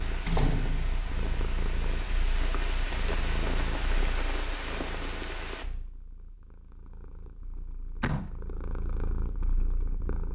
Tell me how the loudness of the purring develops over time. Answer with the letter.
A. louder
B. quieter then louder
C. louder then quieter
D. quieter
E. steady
B.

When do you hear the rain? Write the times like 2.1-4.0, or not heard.
0.0-5.7.